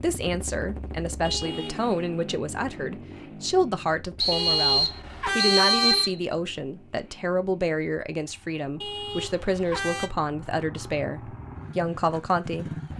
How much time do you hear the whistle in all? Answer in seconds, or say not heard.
2 s.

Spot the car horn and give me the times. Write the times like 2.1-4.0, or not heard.
1.2-1.9, 4.3-6.1, 8.8-10.1.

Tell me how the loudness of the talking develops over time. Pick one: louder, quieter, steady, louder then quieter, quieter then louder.
steady.